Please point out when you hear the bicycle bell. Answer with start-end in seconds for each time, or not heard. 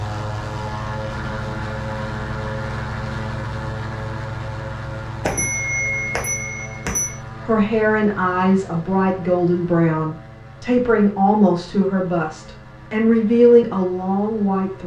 5.2-7.2.